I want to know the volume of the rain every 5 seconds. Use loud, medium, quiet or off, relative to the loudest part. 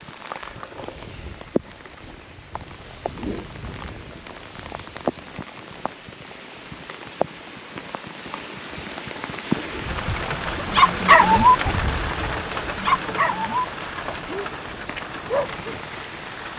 medium, loud, loud, medium.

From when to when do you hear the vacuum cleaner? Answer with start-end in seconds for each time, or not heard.
not heard.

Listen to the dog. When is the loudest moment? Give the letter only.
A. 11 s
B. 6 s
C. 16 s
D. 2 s
A.